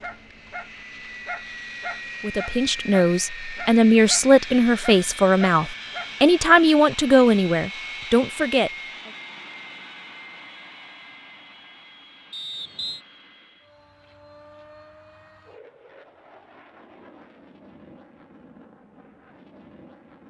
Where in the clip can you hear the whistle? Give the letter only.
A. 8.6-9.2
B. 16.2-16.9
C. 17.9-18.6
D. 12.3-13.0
D.